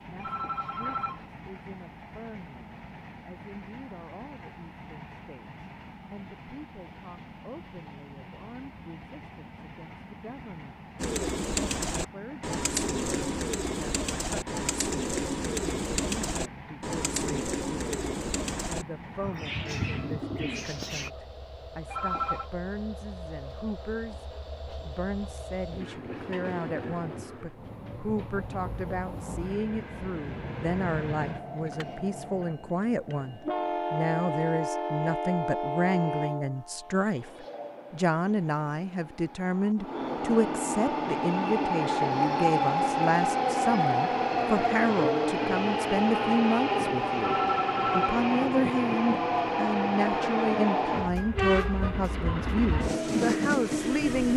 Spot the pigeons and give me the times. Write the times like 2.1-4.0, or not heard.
10.9-21.1.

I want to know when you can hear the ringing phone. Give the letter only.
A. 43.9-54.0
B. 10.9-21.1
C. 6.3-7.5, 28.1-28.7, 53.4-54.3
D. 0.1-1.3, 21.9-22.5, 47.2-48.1
D.